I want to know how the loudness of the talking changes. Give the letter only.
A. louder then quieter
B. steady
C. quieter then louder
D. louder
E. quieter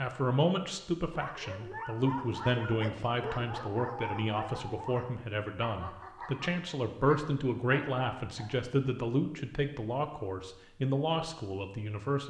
B.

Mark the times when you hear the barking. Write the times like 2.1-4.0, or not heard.
1.1-8.6.